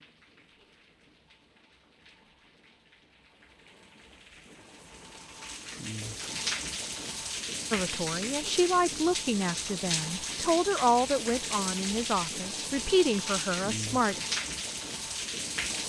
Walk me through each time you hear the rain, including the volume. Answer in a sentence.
The rain can be heard from 0.0 to 15.8 s, getting louder.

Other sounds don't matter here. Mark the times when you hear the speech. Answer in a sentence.
You can hear the speech from 7.7 to 14.2 s.